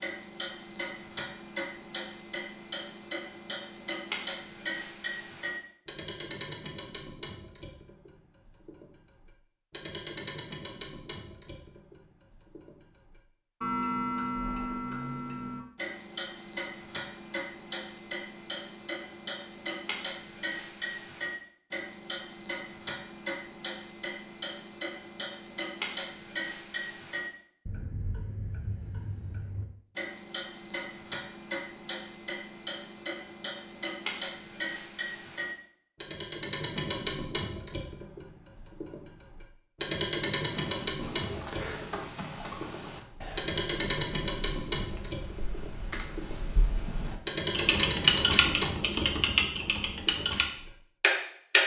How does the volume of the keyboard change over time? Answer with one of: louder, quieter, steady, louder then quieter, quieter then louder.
louder.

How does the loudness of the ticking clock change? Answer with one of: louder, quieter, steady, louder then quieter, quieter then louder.
louder.